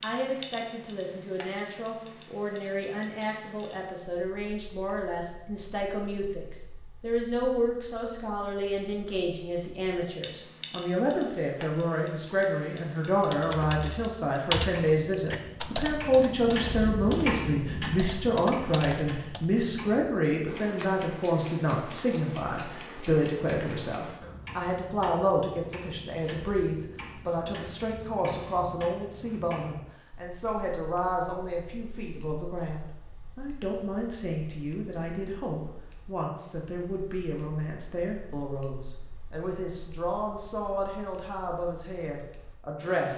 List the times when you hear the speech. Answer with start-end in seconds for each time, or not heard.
0.0-43.1.